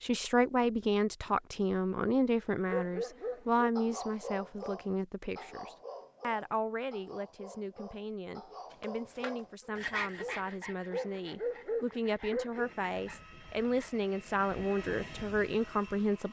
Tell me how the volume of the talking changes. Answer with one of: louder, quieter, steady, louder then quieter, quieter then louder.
quieter then louder.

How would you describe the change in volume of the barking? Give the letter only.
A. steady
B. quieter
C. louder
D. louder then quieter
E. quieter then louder
E.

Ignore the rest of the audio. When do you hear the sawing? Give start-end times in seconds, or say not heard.
8.7-14.0.